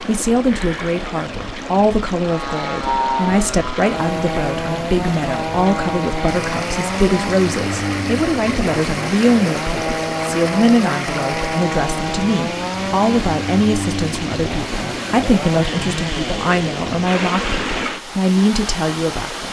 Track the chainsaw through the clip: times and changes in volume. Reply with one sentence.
The chainsaw can be heard from 2.2 to 16.9 s, at a steady volume.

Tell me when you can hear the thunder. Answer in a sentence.
You can't hear the thunder here.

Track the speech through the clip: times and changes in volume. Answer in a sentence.
The speech can be heard from 0.1 to 19.4 s, at a steady volume.